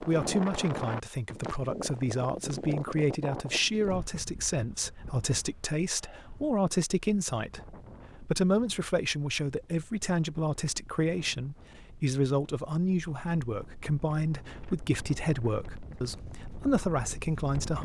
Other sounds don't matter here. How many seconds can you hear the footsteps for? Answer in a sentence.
You can't hear the footsteps here.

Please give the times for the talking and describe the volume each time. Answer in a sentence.
You can hear the talking from 0.0 to 17.7 s, at a steady volume.